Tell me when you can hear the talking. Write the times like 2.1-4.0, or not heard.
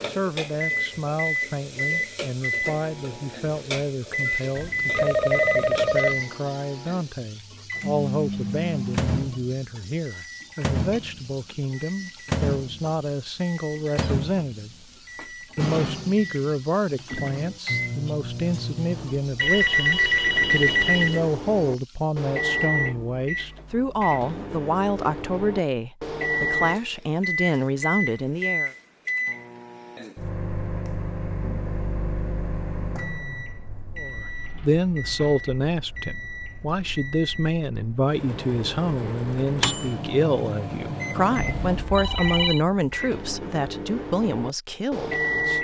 0.0-14.8, 15.6-28.7, 34.0-45.5.